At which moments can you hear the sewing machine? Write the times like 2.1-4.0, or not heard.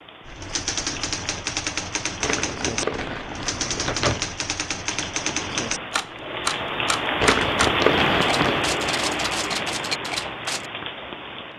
not heard.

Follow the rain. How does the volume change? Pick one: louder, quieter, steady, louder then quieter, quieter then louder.
louder then quieter.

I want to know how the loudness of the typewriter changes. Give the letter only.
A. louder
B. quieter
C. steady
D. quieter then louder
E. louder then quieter
C.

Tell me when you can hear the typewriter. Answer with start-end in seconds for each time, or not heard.
0.2-10.7.